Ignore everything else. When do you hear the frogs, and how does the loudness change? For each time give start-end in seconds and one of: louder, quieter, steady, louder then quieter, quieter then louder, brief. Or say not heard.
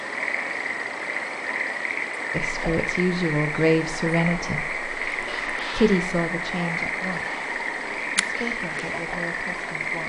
0.0-10.0 steady.